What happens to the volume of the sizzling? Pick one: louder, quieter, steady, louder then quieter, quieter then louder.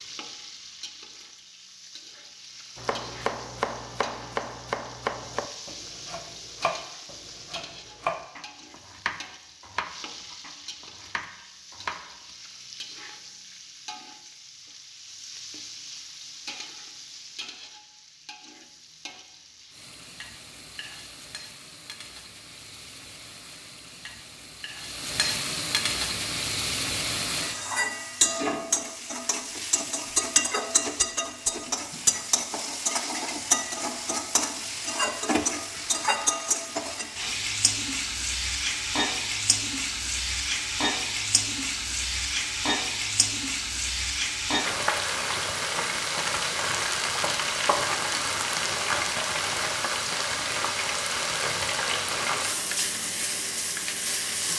louder.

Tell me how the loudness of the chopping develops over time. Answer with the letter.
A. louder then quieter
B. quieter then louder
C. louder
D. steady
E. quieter
E.